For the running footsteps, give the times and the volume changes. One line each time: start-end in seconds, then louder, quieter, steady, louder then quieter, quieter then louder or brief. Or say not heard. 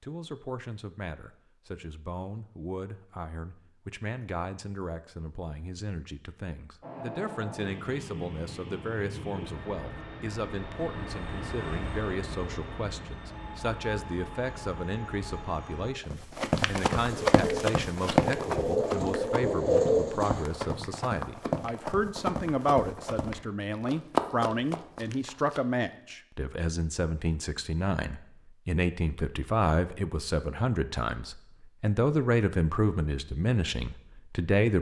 16.1-25.6 quieter then louder.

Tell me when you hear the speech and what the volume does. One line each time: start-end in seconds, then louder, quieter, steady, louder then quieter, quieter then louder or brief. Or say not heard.
0.0-34.7 louder.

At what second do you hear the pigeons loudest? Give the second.
20 s.